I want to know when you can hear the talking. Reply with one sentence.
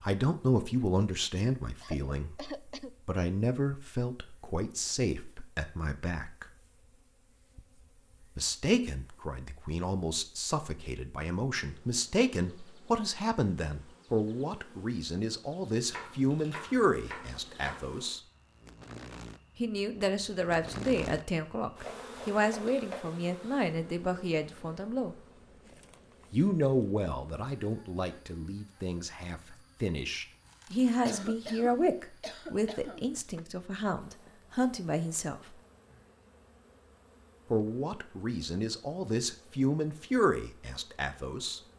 The talking can be heard from 0.0 to 6.5 s, from 8.3 to 18.2 s, from 19.6 to 25.1 s, from 26.3 to 35.5 s and from 37.5 to 41.6 s.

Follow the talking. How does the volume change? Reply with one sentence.
The volume of the talking stays about the same.